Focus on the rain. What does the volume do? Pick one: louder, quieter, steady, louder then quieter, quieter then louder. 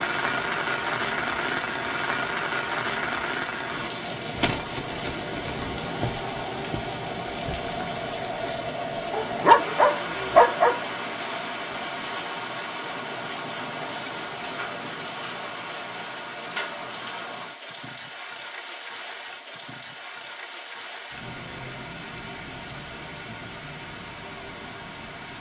quieter.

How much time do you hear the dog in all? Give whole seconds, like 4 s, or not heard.
2 s.